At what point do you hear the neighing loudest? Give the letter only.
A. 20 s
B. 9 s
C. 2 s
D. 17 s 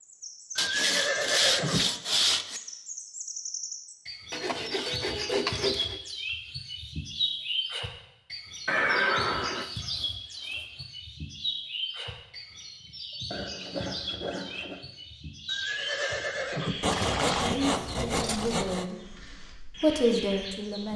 B.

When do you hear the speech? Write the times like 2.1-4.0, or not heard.
17.4-20.9.